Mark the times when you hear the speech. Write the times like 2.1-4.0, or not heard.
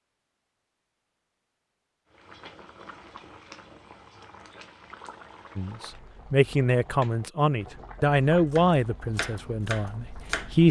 5.5-10.6.